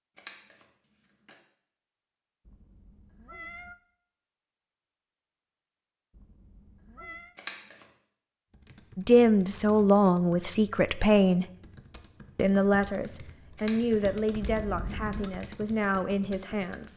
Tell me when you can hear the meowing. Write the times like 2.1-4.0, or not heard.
2.5-3.8, 6.1-7.3, 14.4-15.3.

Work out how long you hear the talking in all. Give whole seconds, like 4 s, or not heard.
7 s.